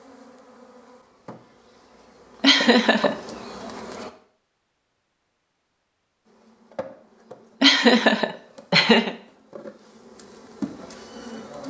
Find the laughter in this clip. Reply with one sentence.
The laughter can be heard from 2.4 to 3.1 s and from 7.6 to 9.2 s.